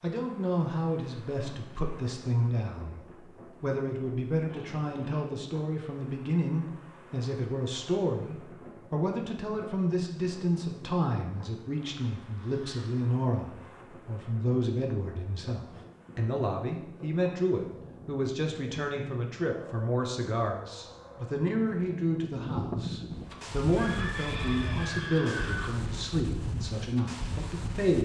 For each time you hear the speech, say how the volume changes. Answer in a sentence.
You can hear the speech briefly from 0.0 to 3.0 s; and from 3.6 to 28.0 s, at a steady volume.